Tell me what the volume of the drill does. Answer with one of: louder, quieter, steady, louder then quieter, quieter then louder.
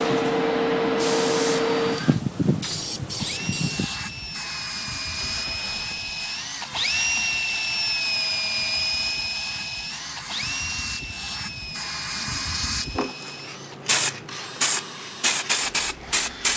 louder then quieter.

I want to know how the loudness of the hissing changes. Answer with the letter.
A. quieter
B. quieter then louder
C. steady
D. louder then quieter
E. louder
B.